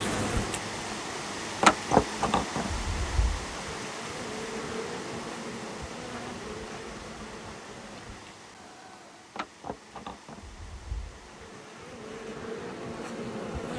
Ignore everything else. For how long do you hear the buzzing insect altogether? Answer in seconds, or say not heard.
14 s.